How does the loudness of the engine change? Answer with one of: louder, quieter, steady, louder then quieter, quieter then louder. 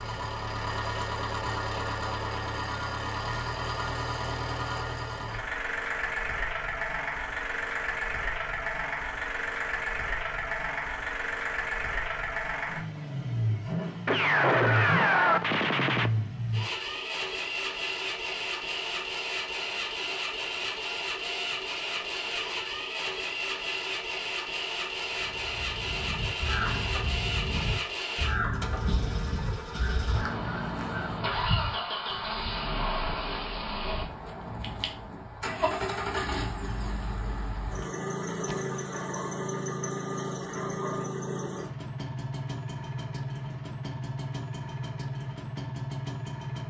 steady.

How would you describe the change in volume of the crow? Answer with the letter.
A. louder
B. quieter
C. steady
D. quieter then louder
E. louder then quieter
C.